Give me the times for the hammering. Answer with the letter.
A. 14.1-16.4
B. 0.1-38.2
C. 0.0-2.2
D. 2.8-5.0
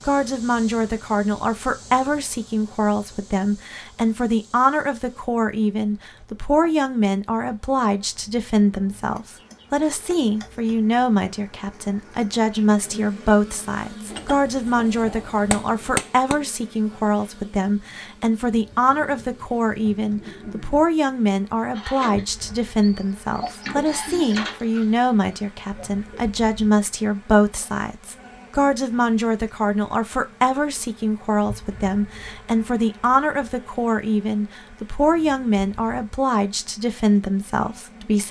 A.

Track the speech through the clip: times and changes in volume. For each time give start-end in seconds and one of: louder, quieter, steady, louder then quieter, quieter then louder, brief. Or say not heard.
0.1-38.2 steady.